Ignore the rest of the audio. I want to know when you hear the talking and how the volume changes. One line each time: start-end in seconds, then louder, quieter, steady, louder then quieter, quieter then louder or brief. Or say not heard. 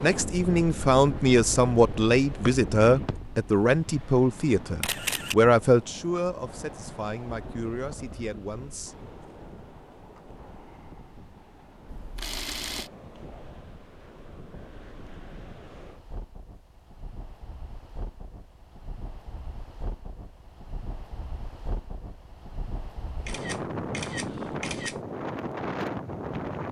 0.0-8.9 quieter.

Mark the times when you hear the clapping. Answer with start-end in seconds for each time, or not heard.
not heard.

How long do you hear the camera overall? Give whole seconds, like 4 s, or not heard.
3 s.